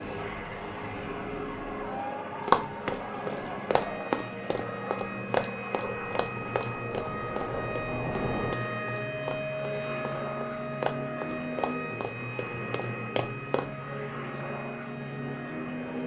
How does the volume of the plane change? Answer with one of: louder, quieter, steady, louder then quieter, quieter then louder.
steady.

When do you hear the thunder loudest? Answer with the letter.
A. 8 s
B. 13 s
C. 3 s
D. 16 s
A.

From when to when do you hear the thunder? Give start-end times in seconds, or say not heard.
5.8-8.6.